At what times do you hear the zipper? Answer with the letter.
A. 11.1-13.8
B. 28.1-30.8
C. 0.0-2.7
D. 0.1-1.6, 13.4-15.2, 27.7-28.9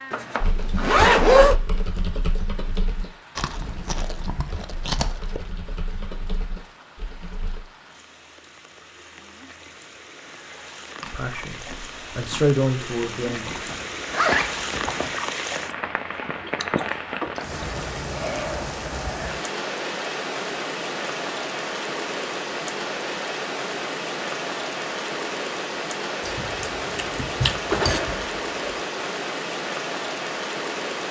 D.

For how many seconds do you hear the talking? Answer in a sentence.
You can hear the talking for 3 seconds altogether.